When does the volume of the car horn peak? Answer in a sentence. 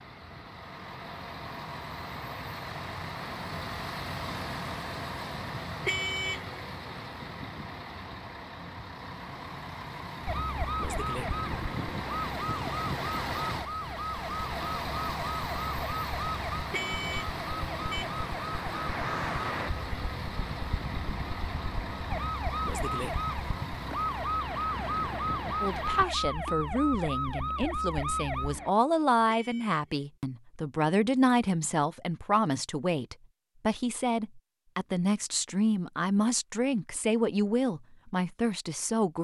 The volume of the car horn peaks at 6 seconds.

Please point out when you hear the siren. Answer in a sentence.
The siren can be heard from 10.2 to 28.7 s.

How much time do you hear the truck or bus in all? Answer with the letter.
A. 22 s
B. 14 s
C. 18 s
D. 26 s
D.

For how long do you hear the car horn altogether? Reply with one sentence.
The car horn can be heard for 3 seconds in total.